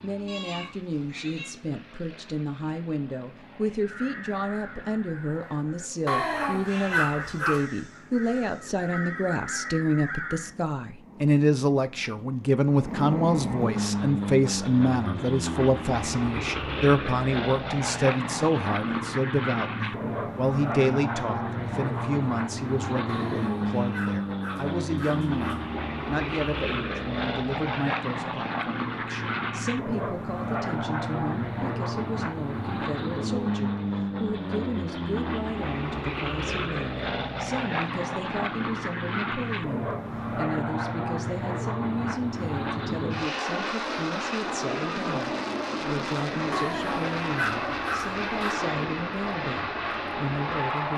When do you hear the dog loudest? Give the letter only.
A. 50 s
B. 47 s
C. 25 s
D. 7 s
D.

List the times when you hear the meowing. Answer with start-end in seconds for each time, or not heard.
0.2-1.6.